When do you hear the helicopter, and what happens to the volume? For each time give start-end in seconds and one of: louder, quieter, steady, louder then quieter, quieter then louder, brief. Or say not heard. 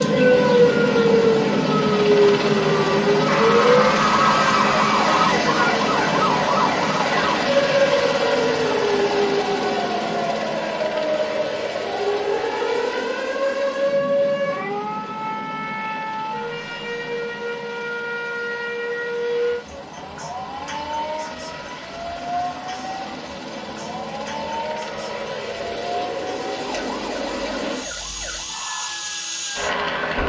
0.0-30.2 quieter then louder.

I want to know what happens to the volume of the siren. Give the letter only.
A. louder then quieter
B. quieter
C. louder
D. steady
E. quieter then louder
B.